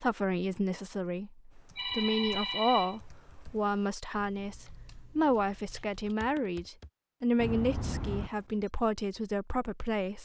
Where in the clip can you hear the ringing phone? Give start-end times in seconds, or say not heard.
1.8-3.4, 7.4-8.6.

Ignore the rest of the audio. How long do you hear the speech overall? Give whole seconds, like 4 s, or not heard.
10 s.